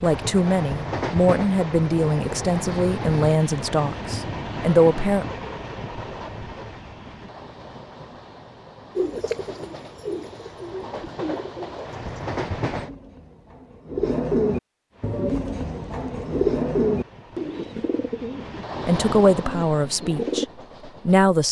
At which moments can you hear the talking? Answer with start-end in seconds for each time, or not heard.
0.0-5.2, 18.9-21.4.